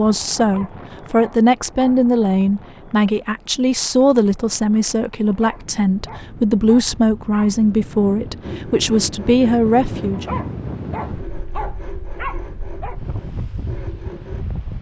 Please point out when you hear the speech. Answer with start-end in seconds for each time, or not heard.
0.0-10.2.